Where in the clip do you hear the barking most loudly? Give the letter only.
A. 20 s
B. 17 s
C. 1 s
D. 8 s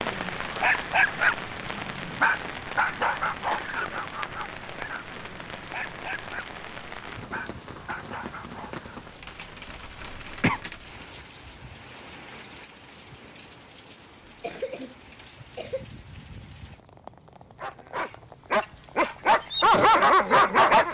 A.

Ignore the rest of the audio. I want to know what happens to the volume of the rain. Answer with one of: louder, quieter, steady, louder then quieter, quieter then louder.
quieter.